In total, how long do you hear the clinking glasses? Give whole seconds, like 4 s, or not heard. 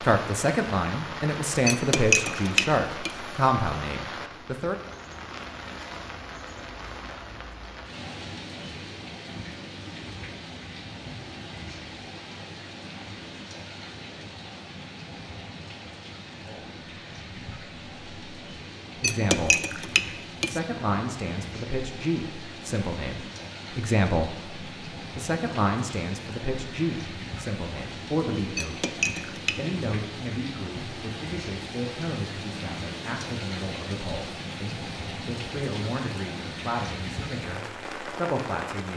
4 s.